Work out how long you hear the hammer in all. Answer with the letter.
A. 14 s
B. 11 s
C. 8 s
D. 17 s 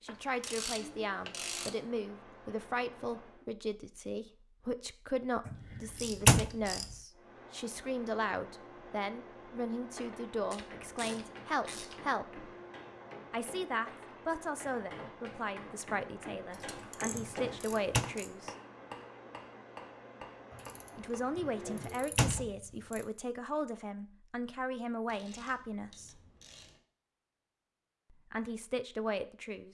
B.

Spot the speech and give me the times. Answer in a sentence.
You can hear the speech from 0.0 to 12.4 s, from 13.3 to 18.6 s, from 20.9 to 26.2 s and from 28.1 to 29.6 s.